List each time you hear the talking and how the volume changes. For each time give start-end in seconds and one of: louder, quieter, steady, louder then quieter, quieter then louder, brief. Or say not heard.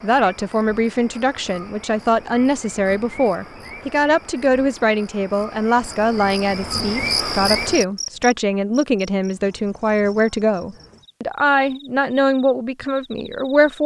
0.0-13.8 steady.